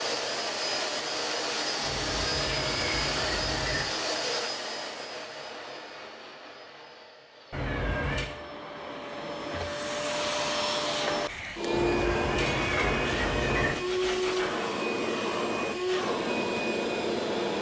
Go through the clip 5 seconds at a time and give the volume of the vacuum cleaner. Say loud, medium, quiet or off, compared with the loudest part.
loud, medium, loud, loud.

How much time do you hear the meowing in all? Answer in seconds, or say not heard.
5 s.